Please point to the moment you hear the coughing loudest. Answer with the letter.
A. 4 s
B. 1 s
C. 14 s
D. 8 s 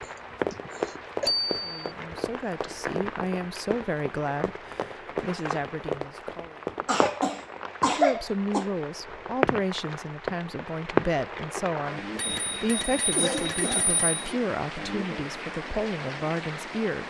D.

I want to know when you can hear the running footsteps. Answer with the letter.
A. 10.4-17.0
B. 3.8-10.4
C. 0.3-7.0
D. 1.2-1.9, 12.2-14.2
C.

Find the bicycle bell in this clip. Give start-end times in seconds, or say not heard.
1.2-1.9, 12.2-14.2.